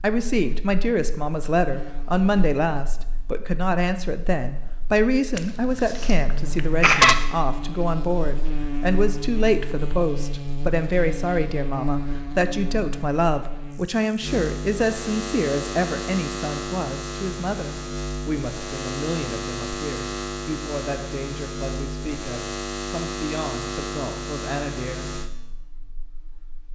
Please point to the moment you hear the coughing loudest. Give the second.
7 s.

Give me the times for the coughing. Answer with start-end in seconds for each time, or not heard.
5.3-7.2.